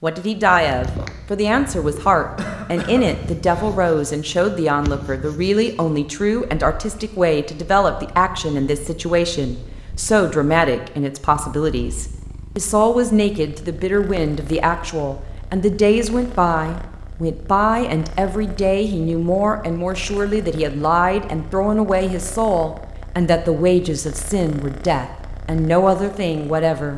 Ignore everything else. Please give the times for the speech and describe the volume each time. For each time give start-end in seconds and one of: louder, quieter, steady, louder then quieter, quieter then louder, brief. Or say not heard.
0.0-26.9 steady.